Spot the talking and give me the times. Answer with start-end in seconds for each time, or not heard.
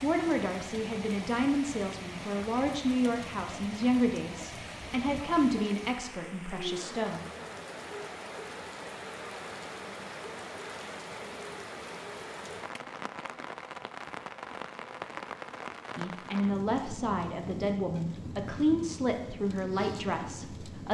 0.0-7.2, 15.9-20.8.